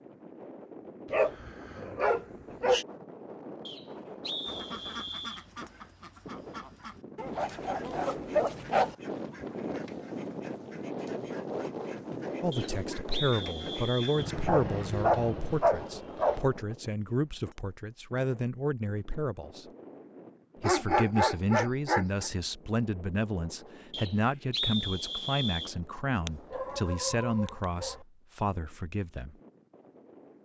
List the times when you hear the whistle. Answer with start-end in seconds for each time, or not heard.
3.6-5.5, 12.5-14.3, 23.9-25.8.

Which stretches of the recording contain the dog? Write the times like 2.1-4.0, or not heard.
1.1-2.9, 7.2-8.9, 14.2-16.4, 20.6-22.3, 26.2-28.0.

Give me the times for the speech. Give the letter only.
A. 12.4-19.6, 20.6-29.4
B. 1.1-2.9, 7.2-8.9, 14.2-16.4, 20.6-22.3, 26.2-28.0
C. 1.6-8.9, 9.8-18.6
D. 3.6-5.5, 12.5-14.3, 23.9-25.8
A.